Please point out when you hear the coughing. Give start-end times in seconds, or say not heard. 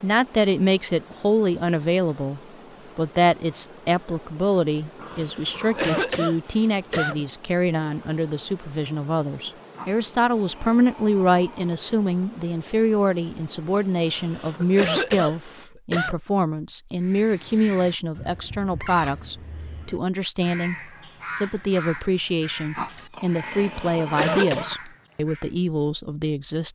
5.1-7.2, 14.1-16.1, 23.5-24.7.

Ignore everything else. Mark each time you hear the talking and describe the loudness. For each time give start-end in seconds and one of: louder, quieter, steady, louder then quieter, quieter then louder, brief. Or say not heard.
0.0-26.7 steady.